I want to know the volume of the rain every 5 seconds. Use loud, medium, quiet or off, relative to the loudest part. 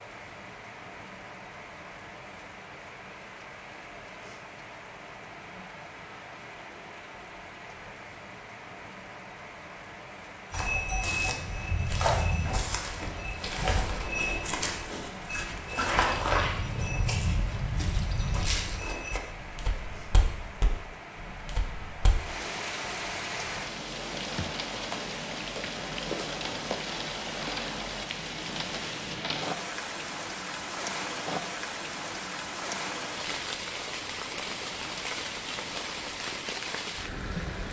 medium, medium, medium, medium, loud, loud, loud, loud.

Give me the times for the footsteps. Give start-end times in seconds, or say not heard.
10.5-22.1.